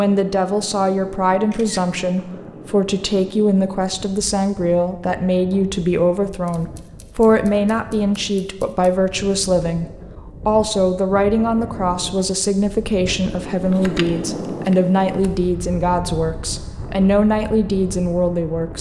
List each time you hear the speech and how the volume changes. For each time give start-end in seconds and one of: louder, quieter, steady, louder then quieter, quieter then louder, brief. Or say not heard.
0.0-18.7 steady.